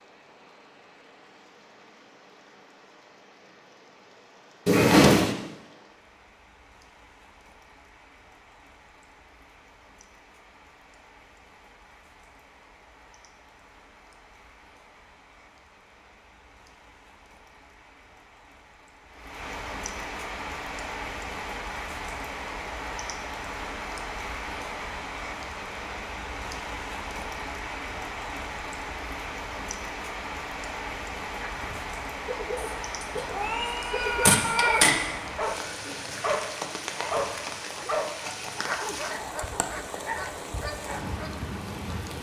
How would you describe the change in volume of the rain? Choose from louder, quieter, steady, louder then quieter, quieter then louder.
louder.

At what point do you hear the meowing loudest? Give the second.
5 s.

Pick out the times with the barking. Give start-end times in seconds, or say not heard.
31.4-41.4.